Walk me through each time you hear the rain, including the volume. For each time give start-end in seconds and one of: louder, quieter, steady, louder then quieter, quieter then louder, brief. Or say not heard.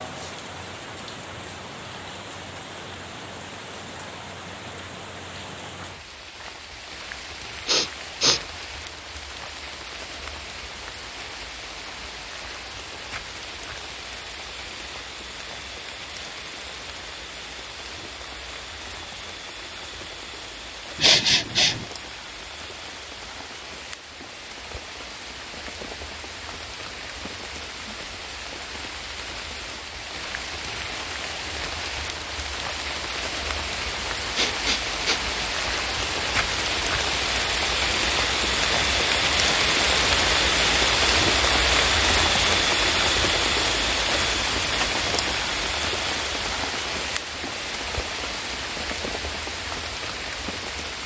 0.0-51.0 louder.